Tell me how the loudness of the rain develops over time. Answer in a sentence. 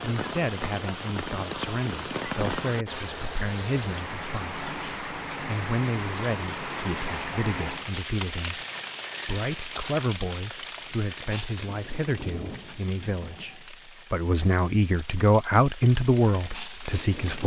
The loudness of the rain goes down.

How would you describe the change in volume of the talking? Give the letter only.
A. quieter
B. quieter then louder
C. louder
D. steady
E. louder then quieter
C.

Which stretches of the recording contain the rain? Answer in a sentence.
The rain can be heard from 0.0 to 17.4 s.